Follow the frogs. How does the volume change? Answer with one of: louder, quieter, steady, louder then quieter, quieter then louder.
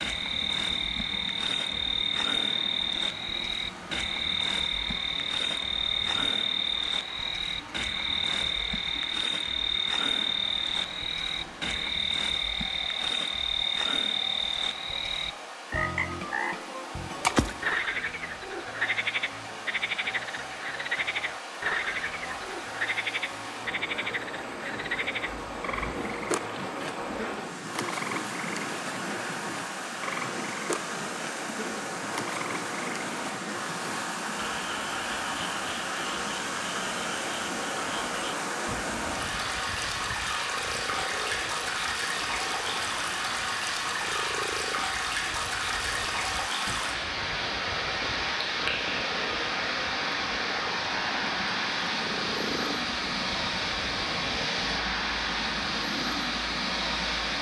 quieter.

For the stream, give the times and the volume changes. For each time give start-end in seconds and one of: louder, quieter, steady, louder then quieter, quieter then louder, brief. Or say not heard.
0.0-57.3 louder.